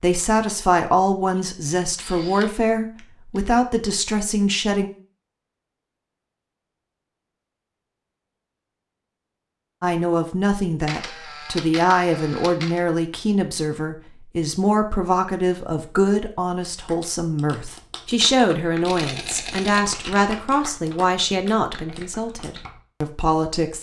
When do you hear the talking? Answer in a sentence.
The talking can be heard from 0.0 to 4.9 s and from 9.8 to 23.7 s.